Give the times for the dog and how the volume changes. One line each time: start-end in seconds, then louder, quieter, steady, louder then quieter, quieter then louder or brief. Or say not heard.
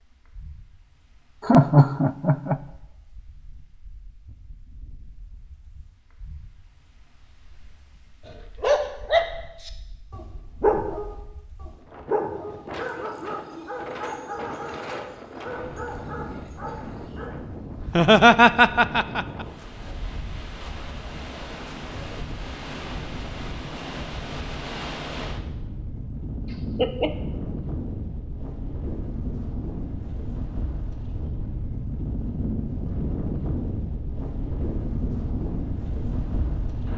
8.2-17.3 quieter.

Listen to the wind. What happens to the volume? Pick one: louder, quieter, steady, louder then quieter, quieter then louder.
louder.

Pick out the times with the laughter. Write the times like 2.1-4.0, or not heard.
1.4-2.5, 17.8-19.4, 26.5-27.1.